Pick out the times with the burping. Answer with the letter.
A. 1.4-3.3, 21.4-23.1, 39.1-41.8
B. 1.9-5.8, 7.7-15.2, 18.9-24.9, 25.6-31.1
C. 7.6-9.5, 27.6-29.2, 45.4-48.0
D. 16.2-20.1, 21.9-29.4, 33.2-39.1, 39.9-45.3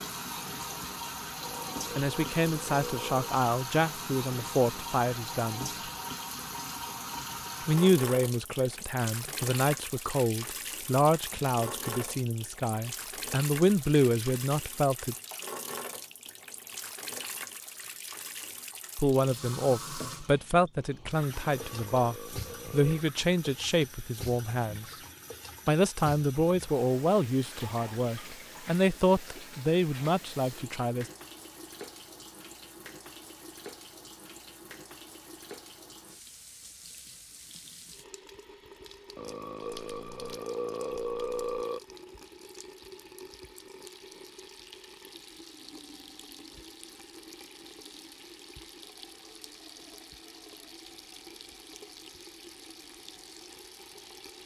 A.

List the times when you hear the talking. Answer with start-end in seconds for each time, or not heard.
1.9-5.8, 7.7-15.2, 18.9-24.9, 25.6-31.1.